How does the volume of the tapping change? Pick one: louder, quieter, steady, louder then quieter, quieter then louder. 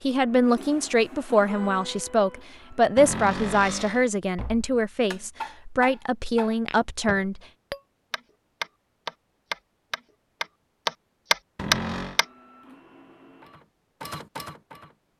louder.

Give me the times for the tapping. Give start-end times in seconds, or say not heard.
4.3-12.2.